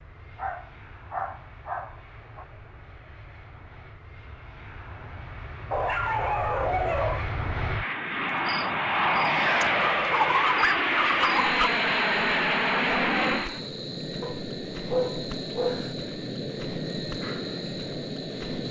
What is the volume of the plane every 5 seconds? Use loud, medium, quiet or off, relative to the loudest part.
quiet, loud, loud, medium.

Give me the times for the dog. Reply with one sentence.
You can hear the dog from 0.3 to 2.5 s, from 5.7 to 7.3 s, from 9.8 to 11.7 s and from 14.2 to 15.9 s.